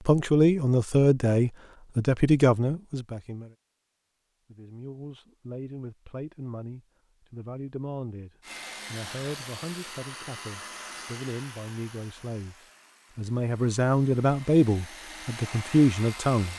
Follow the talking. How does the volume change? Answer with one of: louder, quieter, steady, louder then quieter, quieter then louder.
quieter then louder.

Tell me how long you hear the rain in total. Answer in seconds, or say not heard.
not heard.